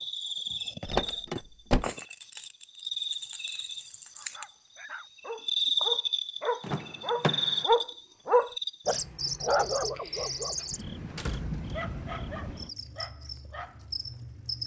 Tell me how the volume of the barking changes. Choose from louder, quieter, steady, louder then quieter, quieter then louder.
louder then quieter.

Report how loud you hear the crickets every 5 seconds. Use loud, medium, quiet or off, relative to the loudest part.
medium, loud, medium.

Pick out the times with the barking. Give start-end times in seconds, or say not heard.
4.2-14.1.